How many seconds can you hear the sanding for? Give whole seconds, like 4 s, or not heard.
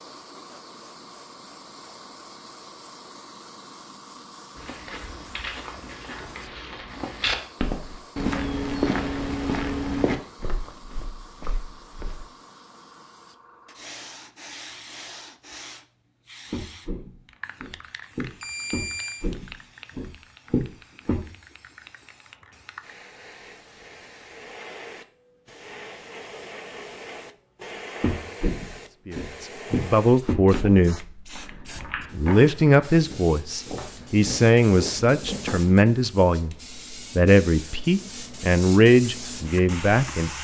2 s.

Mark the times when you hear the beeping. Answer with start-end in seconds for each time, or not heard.
18.4-19.2.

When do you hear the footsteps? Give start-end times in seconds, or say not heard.
4.5-12.2, 16.5-21.2, 28.0-35.5.